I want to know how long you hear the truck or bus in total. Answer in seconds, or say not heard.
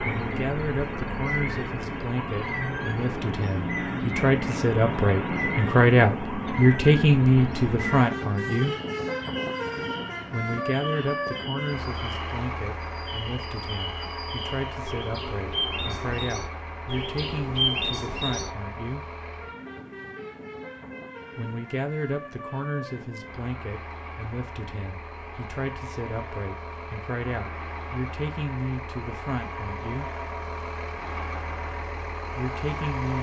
33 s.